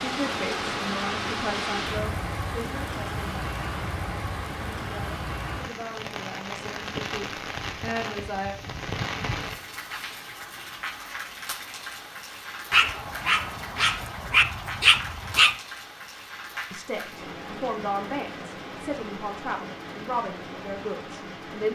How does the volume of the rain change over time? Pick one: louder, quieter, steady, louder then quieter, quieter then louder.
quieter.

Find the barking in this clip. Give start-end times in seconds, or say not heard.
12.7-15.6.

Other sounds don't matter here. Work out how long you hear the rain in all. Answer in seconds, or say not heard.
22 s.